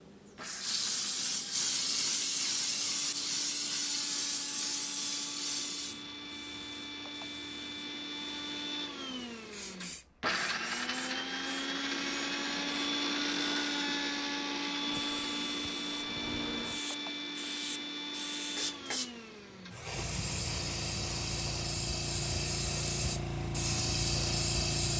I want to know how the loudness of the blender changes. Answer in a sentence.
The volume of the blender goes up, then down.